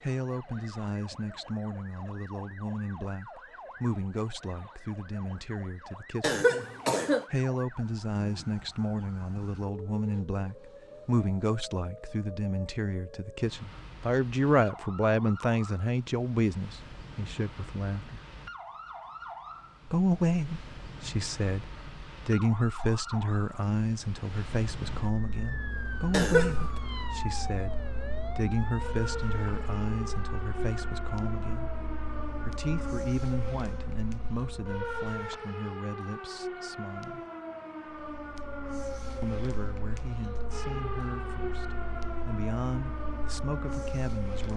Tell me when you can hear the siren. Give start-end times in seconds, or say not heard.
0.0-44.5.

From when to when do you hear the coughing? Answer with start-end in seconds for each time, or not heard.
6.2-7.2, 26.1-26.6.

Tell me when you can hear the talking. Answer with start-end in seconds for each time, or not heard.
0.0-6.4, 7.3-18.2, 19.9-31.8, 32.5-37.2, 39.2-44.5.